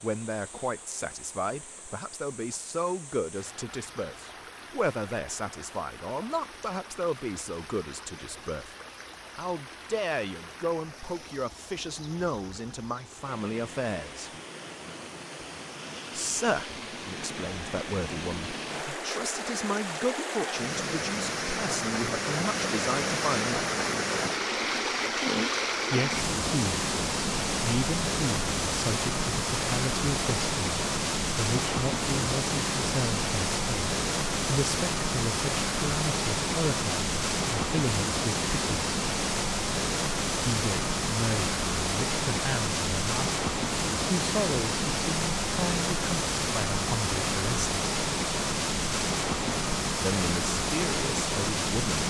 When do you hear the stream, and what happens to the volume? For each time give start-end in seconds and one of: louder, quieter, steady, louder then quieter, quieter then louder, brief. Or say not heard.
0.0-52.0 louder.